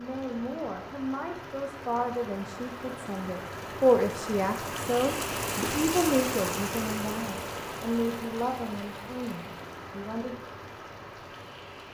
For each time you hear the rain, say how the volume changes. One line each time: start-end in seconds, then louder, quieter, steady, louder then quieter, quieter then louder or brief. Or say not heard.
0.0-11.9 louder then quieter.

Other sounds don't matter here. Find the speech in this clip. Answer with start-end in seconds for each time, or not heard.
0.0-10.3.